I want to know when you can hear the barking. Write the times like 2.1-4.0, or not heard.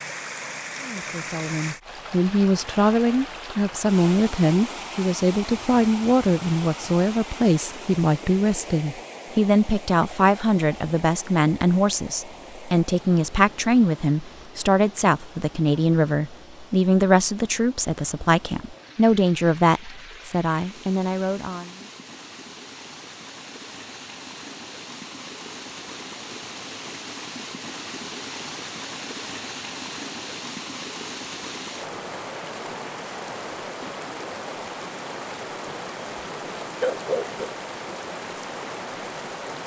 36.5-37.5.